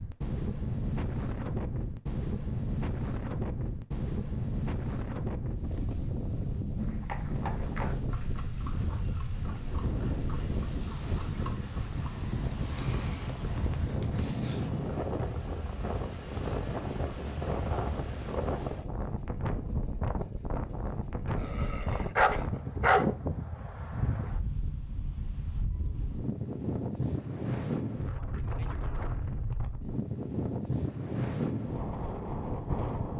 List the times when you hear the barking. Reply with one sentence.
You can hear the barking from 21.4 to 23.1 s.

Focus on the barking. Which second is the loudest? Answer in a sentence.
The volume of the barking peaks at 23 seconds.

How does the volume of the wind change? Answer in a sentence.
The volume of the wind stays about the same.